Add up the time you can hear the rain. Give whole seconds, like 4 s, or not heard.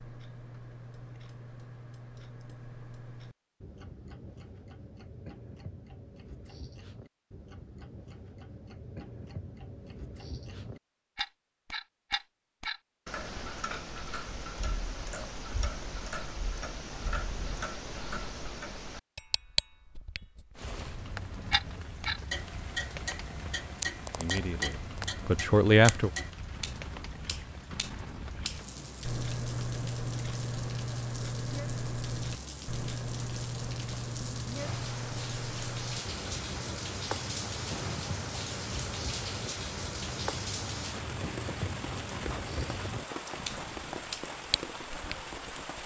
25 s.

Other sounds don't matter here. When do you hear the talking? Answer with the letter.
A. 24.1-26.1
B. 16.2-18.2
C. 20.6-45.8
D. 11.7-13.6
A.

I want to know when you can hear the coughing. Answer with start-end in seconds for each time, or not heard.
not heard.